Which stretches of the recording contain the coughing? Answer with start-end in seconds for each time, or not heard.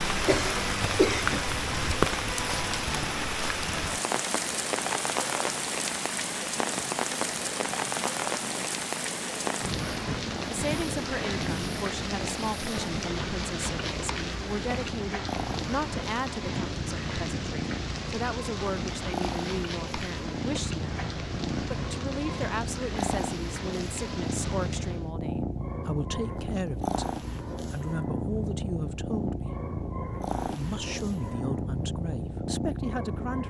0.2-1.4.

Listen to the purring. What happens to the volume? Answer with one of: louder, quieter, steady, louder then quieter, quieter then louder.
louder.